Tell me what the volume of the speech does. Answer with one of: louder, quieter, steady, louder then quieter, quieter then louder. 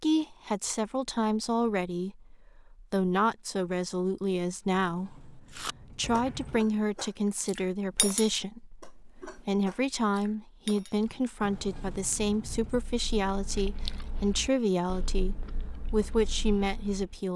steady.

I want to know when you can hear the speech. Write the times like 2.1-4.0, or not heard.
0.0-17.3.